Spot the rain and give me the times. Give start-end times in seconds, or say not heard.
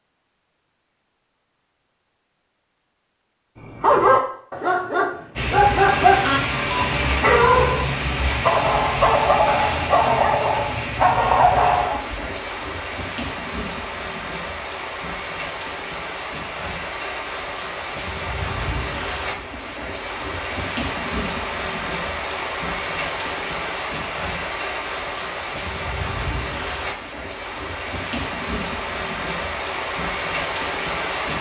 5.3-31.3.